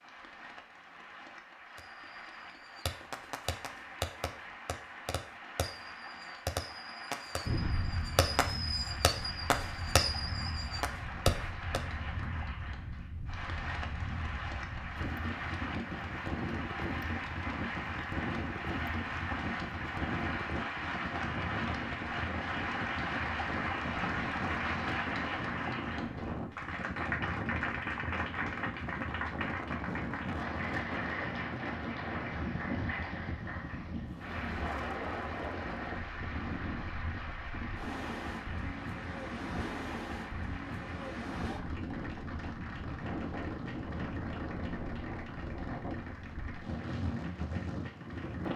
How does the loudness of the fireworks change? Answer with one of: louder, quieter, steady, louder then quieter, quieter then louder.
louder.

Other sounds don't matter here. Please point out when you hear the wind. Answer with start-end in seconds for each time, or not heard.
7.5-48.5.